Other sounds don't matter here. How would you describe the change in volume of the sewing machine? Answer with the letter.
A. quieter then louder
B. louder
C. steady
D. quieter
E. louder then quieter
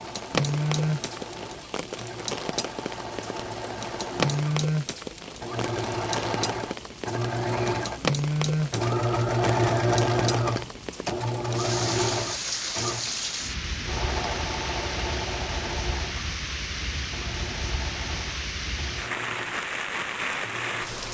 E.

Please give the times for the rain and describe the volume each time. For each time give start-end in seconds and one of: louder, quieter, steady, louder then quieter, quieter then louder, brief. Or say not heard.
0.0-21.0 steady.